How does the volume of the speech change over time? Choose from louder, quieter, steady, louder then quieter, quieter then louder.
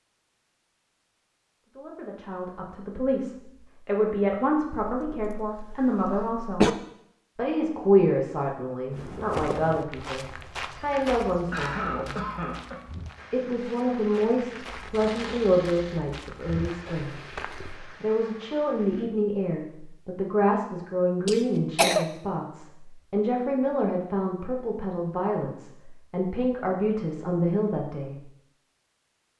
steady.